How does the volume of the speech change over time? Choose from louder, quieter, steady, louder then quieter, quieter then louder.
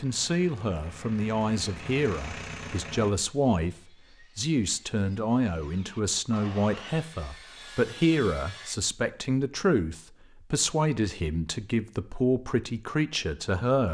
steady.